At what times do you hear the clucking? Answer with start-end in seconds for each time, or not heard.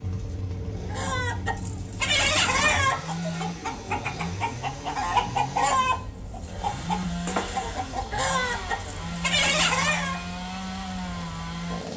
0.9-10.2.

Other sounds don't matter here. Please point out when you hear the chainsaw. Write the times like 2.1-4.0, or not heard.
0.0-11.9.